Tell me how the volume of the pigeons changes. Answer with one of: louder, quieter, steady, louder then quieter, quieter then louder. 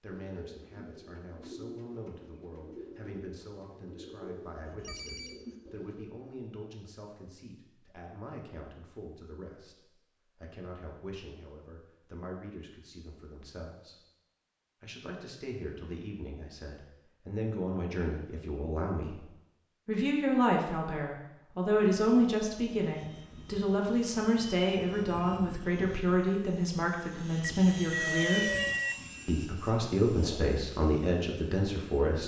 steady.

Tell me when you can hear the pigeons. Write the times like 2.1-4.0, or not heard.
0.1-6.0.